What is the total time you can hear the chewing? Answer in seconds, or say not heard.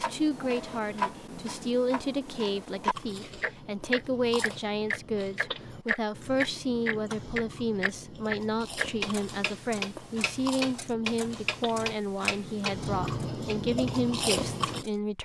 12 s.